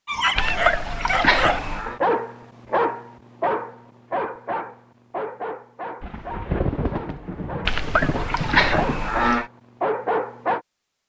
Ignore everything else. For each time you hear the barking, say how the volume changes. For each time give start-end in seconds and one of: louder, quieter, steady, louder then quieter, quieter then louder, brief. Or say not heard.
0.1-10.6 quieter then louder.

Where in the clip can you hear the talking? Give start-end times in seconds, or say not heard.
not heard.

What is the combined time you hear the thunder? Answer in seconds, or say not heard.
3 s.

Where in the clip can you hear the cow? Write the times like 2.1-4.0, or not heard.
0.3-1.9, 7.7-9.5.